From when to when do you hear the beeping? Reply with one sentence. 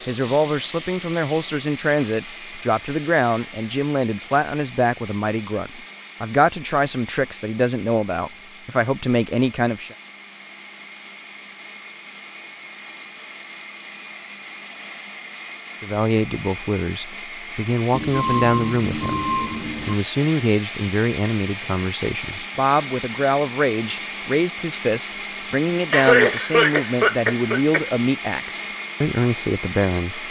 You can hear the beeping from 17.9 to 19.9 s.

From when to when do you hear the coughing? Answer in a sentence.
You can hear the coughing from 25.9 to 27.9 s.